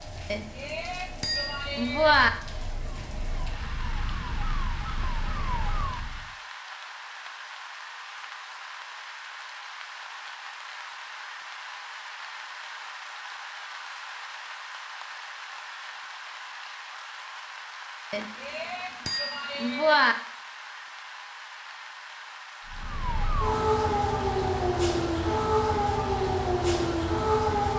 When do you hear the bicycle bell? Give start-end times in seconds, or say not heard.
0.3-2.3, 18.1-20.1.